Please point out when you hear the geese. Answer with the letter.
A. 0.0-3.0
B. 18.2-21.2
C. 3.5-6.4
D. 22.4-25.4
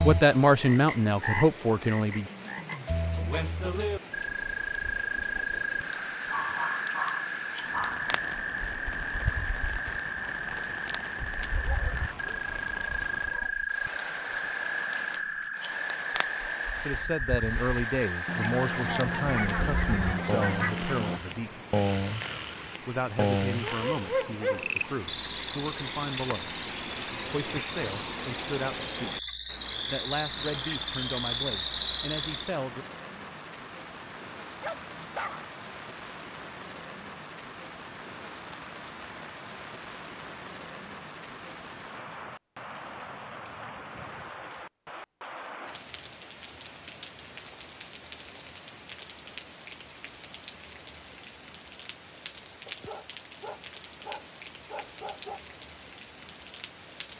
B.